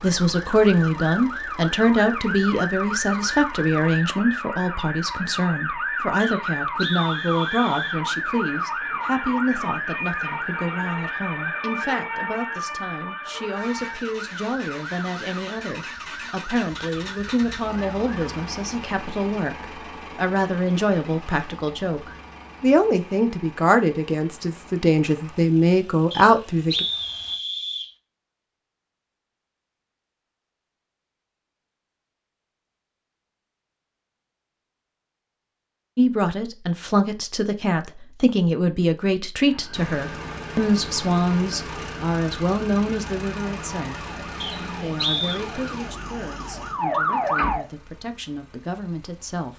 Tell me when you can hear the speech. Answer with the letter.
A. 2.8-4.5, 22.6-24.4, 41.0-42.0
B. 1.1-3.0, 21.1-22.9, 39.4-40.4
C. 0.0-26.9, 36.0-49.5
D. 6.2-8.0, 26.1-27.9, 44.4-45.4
C.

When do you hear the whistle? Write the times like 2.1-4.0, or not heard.
6.2-8.0, 26.1-27.9, 44.4-45.4.